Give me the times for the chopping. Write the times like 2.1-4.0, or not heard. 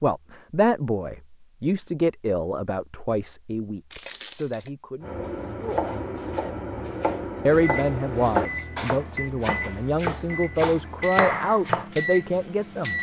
5.0-11.9.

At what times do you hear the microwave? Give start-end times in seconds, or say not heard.
7.5-12.9.